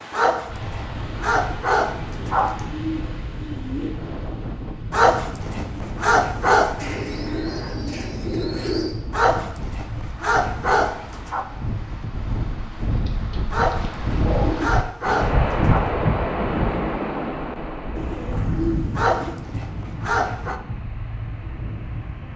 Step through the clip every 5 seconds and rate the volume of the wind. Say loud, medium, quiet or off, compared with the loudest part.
medium, medium, medium, loud, medium.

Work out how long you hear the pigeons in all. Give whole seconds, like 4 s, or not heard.
7 s.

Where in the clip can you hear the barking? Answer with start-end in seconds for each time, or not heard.
0.1-2.5, 4.9-6.8, 9.1-11.4, 13.5-15.9, 18.9-20.6.